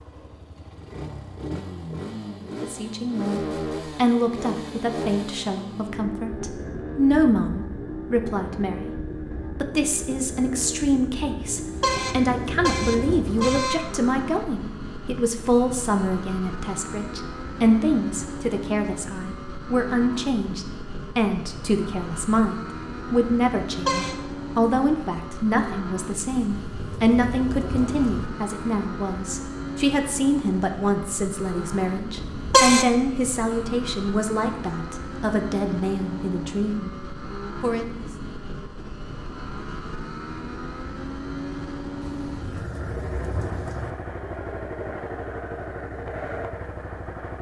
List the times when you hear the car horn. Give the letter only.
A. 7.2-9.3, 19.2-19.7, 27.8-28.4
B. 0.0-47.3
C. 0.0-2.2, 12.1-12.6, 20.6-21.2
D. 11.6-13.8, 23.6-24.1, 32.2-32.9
D.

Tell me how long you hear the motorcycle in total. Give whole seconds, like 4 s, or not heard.
47 s.